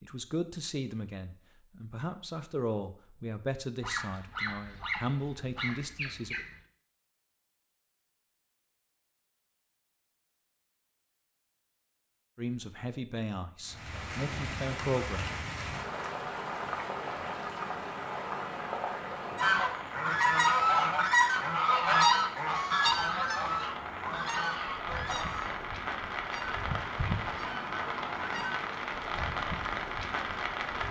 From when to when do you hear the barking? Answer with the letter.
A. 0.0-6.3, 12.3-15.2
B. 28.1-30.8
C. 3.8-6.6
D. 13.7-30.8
C.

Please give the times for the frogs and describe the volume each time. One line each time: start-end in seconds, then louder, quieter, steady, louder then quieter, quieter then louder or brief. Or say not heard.
not heard.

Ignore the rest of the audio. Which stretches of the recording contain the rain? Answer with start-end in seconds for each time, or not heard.
13.7-30.8.